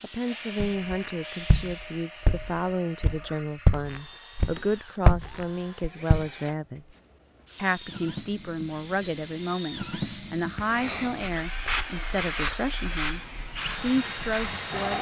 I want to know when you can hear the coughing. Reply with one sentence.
The coughing can be heard from 10.6 to 11.4 s.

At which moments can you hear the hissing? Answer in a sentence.
The hissing can be heard from 0.0 to 2.0 s and from 7.0 to 14.9 s.